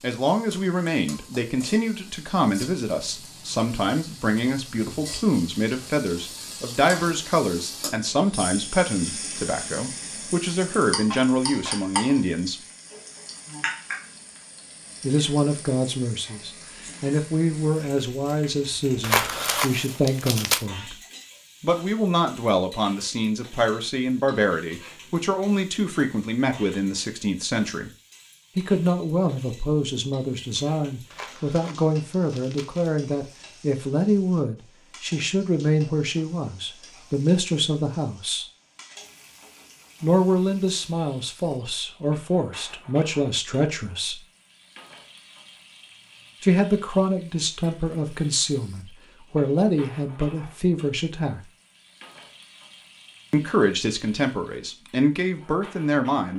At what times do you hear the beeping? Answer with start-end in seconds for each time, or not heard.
not heard.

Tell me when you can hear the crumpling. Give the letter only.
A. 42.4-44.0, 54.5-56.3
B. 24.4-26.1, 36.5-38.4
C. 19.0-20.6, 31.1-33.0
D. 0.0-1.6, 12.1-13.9
C.